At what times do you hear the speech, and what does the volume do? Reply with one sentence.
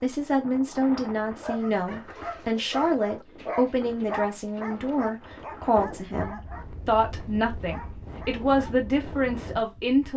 You can hear the speech from 0.0 to 10.1 s, at a steady volume.